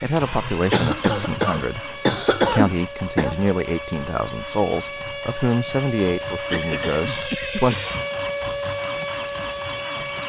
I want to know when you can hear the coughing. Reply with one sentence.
The coughing can be heard from 0.7 to 3.4 s and from 6.5 to 8.1 s.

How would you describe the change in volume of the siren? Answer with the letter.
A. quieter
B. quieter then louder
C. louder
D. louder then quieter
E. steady
C.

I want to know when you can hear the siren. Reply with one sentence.
The siren can be heard from 0.0 to 10.2 s.